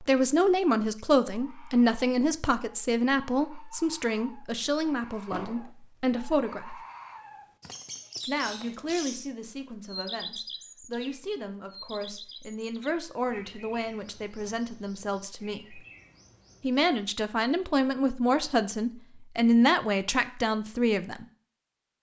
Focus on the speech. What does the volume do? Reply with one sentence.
The loudness of the speech goes down, then up.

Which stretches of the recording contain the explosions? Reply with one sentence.
You can hear the explosions from 5.3 to 5.7 s.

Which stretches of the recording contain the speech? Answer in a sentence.
The speech can be heard from 0.0 to 6.8 s, from 8.2 to 15.8 s and from 16.6 to 21.2 s.